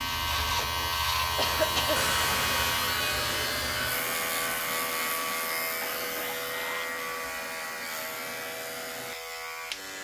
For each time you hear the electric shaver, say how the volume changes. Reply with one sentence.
You can hear the electric shaver from 0.0 to 10.0 s, getting quieter.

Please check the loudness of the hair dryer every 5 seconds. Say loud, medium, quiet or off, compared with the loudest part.
loud, medium.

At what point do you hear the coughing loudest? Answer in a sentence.
The volume of the coughing peaks at 2 seconds.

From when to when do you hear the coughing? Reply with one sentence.
You can hear the coughing from 1.4 to 2.1 s and from 5.8 to 6.9 s.